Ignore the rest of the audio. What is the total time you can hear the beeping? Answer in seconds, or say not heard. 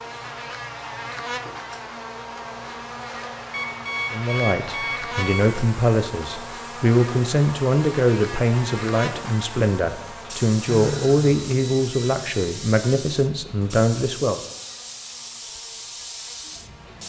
4 s.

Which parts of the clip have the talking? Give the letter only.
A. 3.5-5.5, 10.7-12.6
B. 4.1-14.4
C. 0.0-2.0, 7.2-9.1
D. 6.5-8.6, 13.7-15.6
B.